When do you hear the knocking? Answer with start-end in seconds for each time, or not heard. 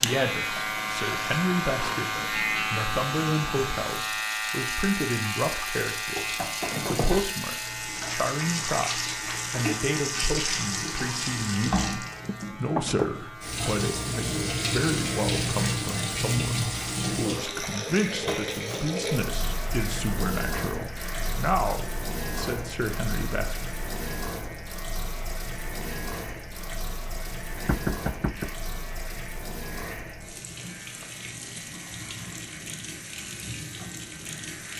6.2-7.3, 12.2-13.1, 27.6-28.5.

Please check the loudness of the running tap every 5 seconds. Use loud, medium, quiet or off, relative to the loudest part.
medium, loud, loud, loud, medium, medium, medium.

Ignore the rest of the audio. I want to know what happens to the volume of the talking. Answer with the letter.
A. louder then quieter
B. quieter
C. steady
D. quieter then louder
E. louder
C.